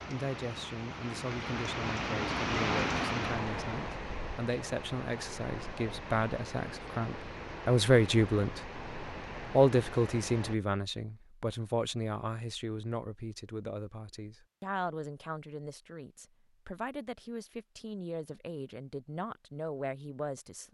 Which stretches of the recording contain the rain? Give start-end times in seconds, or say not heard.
0.0-10.6.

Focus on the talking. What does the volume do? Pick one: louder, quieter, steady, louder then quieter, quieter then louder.
louder then quieter.